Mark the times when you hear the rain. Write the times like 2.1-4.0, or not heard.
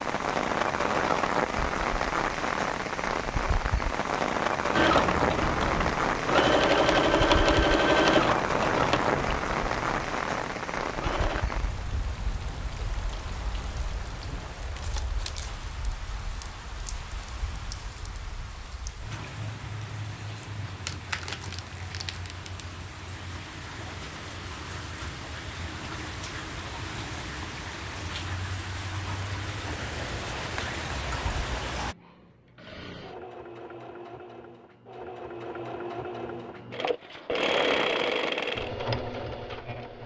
0.0-31.9.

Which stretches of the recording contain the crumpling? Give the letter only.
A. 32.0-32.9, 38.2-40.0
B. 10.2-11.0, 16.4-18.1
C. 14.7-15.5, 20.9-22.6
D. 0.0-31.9
C.